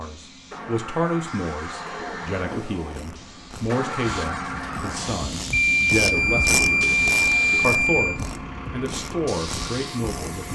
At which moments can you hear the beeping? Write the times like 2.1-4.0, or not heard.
1.9-2.6, 5.5-8.2.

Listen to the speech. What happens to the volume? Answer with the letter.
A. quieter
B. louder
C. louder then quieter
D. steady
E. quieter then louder
D.